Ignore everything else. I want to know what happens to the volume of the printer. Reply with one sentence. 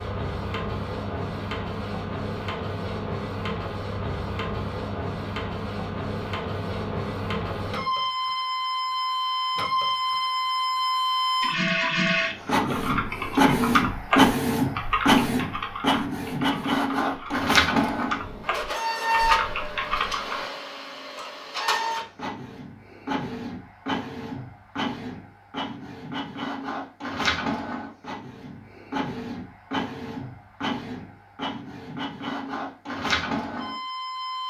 The loudness of the printer goes up, then down.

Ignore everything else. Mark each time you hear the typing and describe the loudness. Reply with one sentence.
You can hear the typing from 12.4 to 20.4 s, getting quieter then louder.